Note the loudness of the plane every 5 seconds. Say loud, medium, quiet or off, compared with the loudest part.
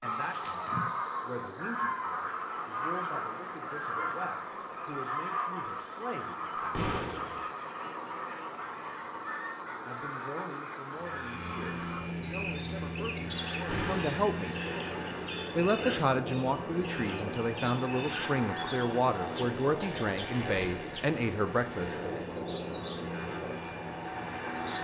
off, off, loud, loud, loud.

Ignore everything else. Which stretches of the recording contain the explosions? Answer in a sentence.
You can hear the explosions from 6.7 to 7.4 s and from 13.7 to 14.2 s.